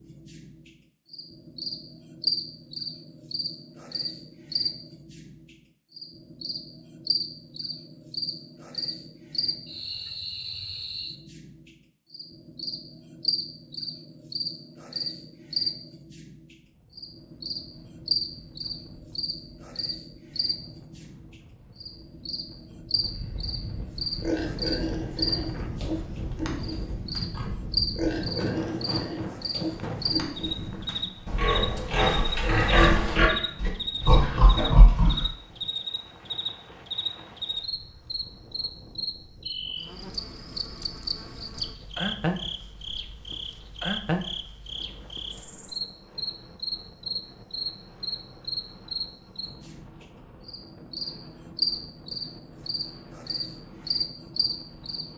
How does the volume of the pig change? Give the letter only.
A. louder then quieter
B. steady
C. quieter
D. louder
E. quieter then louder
D.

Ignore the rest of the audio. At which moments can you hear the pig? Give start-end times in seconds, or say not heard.
23.9-35.3.